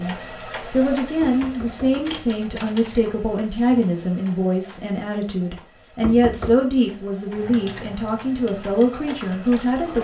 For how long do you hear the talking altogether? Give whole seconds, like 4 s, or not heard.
10 s.